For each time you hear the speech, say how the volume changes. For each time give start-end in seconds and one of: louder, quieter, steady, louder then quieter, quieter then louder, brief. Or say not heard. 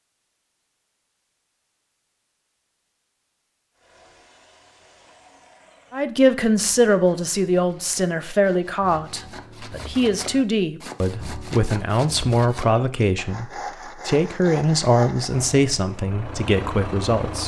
5.9-17.4 steady.